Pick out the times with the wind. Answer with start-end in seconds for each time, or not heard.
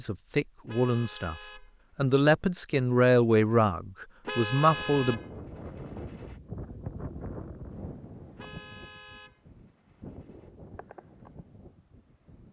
4.6-12.4.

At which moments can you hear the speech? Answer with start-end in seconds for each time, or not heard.
0.0-5.2.